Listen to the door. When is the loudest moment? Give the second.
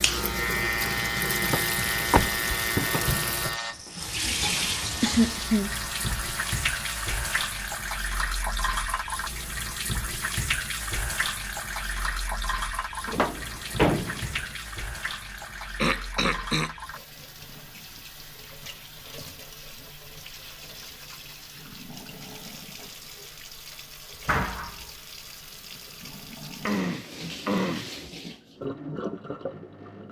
14 s.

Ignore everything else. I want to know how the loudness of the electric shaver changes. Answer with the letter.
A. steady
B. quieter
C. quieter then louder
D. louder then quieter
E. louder
B.